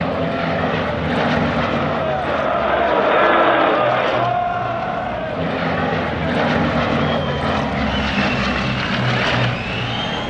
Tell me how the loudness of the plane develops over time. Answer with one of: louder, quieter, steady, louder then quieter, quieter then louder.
quieter then louder.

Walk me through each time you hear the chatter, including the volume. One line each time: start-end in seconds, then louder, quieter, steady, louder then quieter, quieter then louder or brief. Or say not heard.
0.1-10.2 louder then quieter.